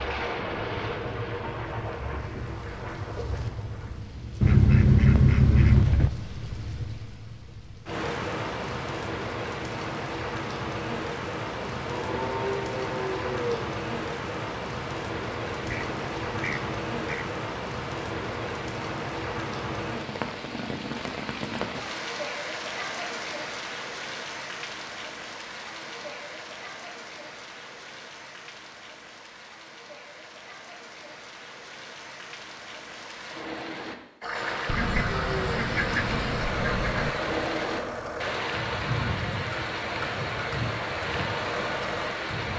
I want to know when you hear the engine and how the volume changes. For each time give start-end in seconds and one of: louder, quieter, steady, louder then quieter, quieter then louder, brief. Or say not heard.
34.2-42.5 steady.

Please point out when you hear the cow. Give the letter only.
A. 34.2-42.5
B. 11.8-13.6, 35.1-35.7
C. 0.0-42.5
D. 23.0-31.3
B.